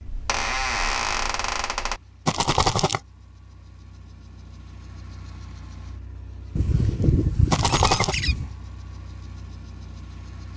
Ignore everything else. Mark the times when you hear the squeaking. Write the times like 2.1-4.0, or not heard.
0.1-2.0, 6.5-8.6.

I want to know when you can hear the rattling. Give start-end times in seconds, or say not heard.
2.2-3.0, 7.5-8.2.